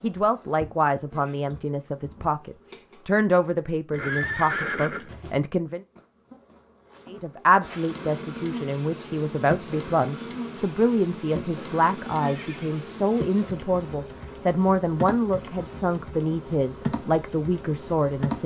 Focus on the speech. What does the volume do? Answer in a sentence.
The volume of the speech stays about the same.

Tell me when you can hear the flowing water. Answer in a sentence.
The flowing water can't be heard in this clip.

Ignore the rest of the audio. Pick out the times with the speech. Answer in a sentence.
The speech can be heard from 0.0 to 5.8 s and from 7.0 to 18.4 s.